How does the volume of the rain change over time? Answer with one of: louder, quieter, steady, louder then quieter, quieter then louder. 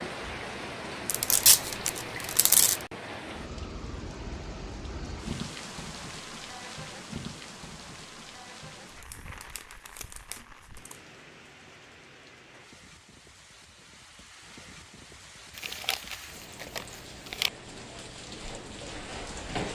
quieter then louder.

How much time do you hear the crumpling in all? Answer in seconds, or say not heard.
6 s.